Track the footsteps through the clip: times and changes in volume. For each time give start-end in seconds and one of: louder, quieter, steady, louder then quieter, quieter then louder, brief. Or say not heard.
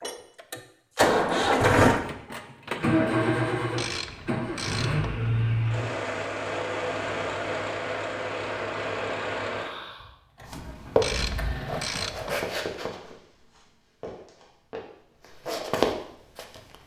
10.4-16.8 quieter then louder.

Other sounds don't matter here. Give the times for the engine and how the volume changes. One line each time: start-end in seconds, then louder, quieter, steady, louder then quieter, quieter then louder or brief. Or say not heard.
0.0-11.8 quieter.